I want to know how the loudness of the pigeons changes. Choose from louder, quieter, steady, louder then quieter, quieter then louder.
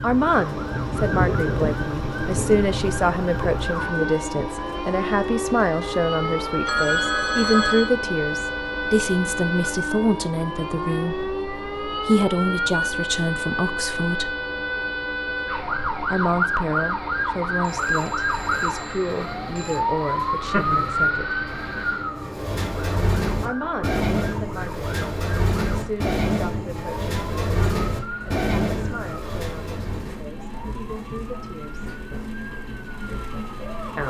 louder.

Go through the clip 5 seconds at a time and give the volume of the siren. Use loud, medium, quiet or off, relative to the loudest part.
loud, loud, loud, loud, loud, medium, quiet.